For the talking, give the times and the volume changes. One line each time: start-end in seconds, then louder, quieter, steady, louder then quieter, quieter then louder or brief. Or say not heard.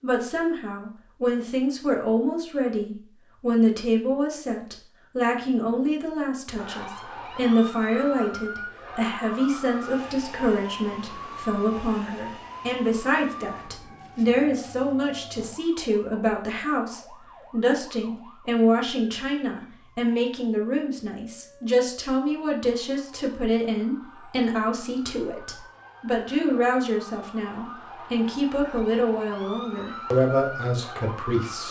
0.0-31.6 steady.